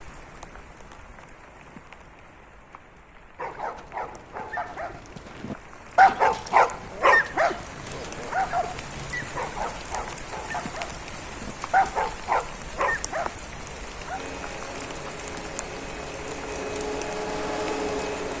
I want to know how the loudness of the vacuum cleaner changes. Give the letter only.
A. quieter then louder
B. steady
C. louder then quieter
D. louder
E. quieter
D.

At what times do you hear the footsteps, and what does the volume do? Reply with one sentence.
You can't hear the footsteps here.